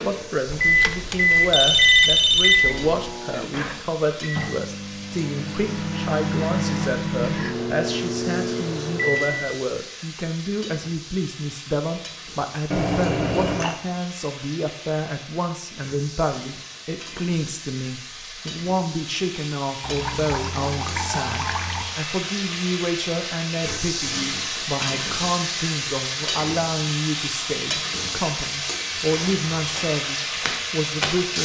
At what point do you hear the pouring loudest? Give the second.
13 s.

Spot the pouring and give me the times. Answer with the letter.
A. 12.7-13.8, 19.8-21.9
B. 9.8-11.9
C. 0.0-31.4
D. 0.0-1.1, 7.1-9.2
A.